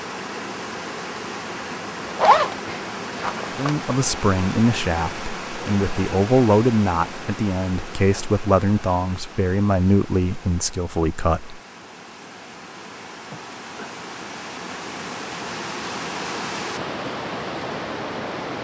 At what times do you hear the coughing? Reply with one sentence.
The coughing can be heard from 13.2 to 13.9 s.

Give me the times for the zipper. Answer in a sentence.
You can hear the zipper from 2.0 to 3.8 s.